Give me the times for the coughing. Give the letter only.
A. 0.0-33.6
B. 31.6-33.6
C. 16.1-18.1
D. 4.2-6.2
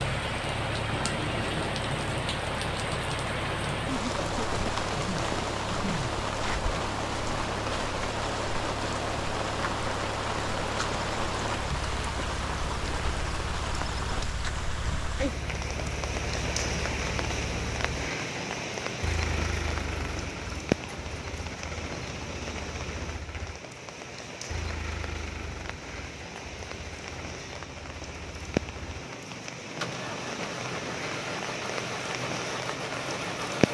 D.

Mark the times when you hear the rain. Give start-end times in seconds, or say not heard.
0.0-33.6.